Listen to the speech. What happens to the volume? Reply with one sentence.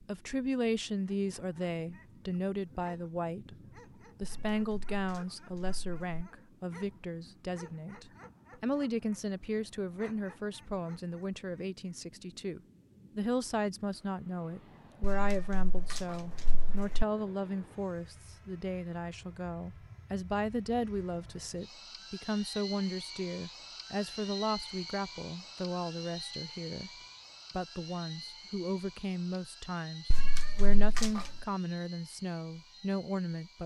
The volume of the speech stays about the same.